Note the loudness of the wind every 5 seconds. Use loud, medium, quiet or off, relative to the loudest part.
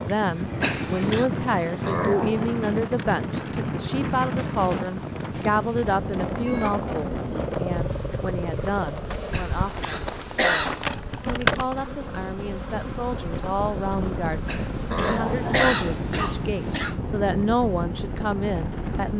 loud, loud, medium, loud.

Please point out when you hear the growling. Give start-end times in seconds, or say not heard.
1.9-2.5, 7.3-9.3, 14.9-16.2.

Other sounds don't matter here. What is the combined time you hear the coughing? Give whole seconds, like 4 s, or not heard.
5 s.